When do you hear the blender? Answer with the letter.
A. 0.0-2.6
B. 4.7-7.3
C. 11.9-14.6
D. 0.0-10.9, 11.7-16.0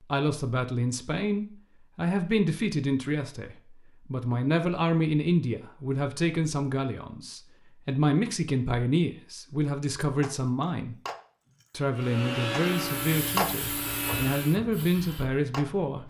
C.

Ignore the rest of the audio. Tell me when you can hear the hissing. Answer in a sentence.
The hissing can be heard from 12.7 to 16.0 s.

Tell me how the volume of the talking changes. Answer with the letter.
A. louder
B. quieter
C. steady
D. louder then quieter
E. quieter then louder
C.